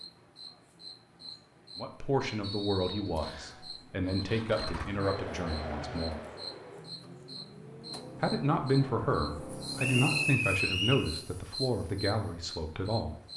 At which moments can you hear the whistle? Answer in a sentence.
You can hear the whistle from 2.4 to 3.5 s and from 9.8 to 11.1 s.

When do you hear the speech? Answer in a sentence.
You can hear the speech from 1.8 to 6.2 s and from 8.2 to 13.2 s.